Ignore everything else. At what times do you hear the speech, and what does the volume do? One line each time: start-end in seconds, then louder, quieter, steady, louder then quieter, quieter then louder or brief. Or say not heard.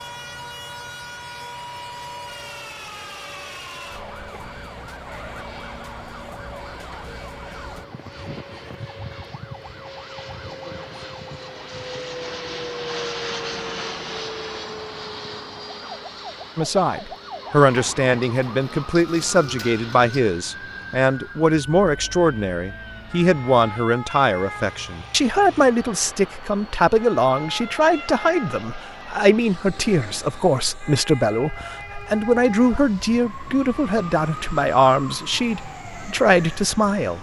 16.6-37.1 steady.